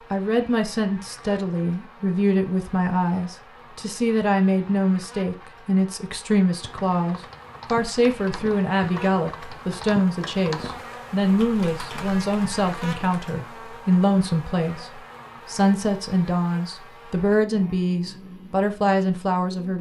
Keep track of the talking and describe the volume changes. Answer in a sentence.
The loudness of the talking stays about the same.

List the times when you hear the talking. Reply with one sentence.
You can hear the talking from 0.1 to 19.7 s.